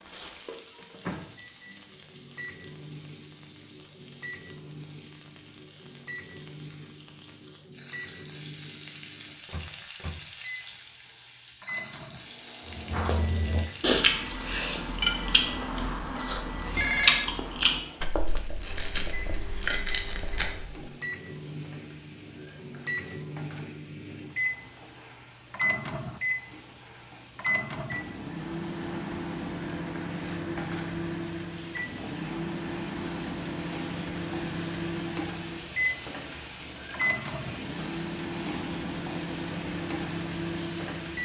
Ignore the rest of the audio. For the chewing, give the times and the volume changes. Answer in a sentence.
The chewing can be heard from 12.7 to 20.9 s, getting quieter.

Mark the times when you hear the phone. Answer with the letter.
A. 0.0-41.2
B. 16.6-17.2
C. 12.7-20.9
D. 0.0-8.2
B.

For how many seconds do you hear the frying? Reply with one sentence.
You can hear the frying for 41 seconds altogether.